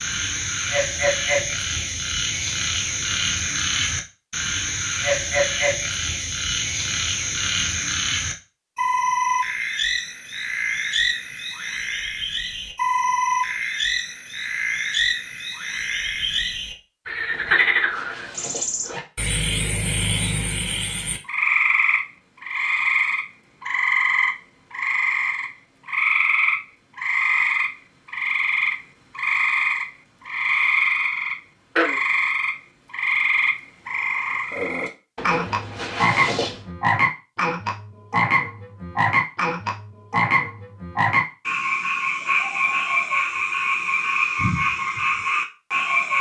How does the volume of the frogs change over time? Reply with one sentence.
The loudness of the frogs stays about the same.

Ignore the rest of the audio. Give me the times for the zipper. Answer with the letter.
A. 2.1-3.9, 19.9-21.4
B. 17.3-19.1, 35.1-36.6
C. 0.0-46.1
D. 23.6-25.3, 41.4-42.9
B.